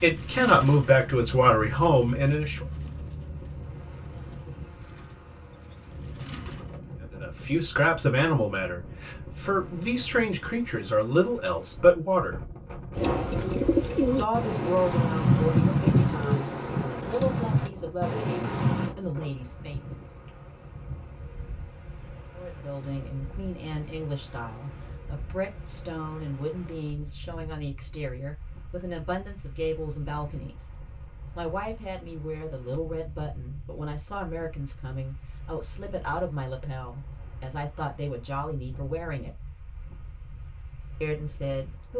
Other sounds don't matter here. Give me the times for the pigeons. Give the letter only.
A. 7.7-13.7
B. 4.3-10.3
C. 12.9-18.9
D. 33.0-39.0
C.